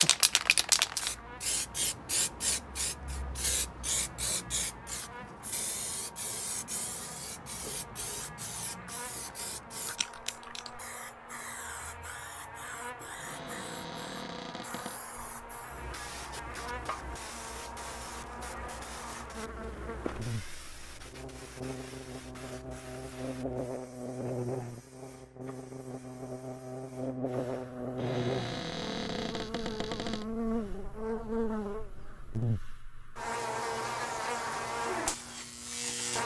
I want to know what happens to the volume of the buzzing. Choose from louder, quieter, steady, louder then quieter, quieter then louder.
louder.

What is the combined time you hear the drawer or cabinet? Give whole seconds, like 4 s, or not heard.
4 s.